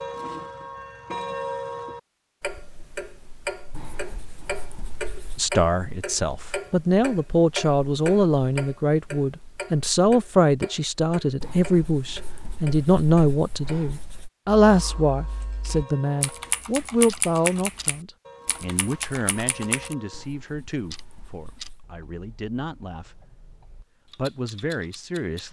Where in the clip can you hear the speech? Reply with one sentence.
You can hear the speech from 5.3 to 23.2 s and from 24.1 to 25.4 s.